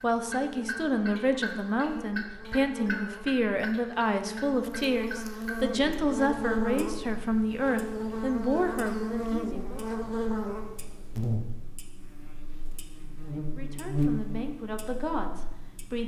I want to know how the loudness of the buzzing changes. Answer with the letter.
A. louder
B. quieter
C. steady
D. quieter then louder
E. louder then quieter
A.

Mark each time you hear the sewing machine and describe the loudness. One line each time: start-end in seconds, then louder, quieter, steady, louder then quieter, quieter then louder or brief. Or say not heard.
not heard.